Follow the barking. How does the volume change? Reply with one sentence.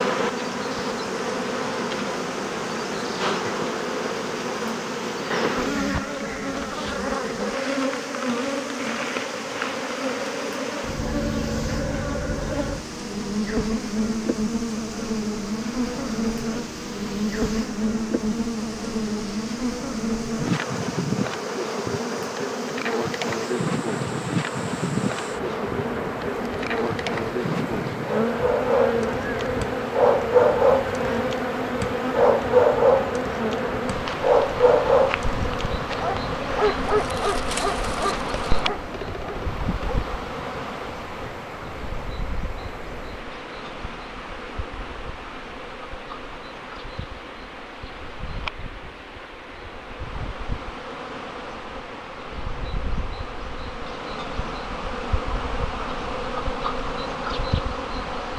The loudness of the barking goes down.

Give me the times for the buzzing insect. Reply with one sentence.
The buzzing insect can be heard from 0.0 to 58.3 s.